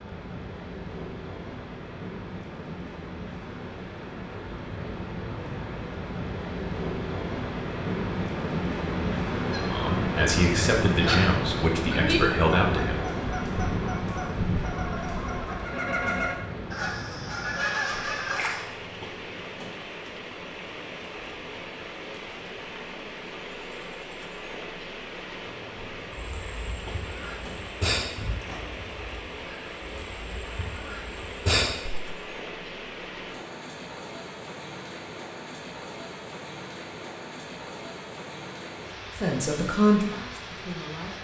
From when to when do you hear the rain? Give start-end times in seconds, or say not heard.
0.0-41.1.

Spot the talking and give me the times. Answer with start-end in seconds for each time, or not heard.
9.7-13.0, 39.1-41.1.